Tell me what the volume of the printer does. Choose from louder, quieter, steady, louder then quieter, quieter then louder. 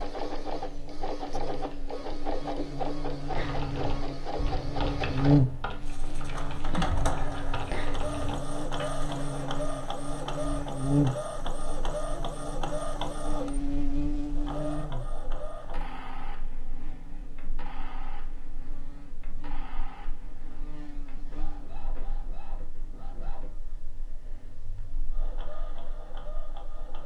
quieter.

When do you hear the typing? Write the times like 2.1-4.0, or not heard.
3.3-8.8.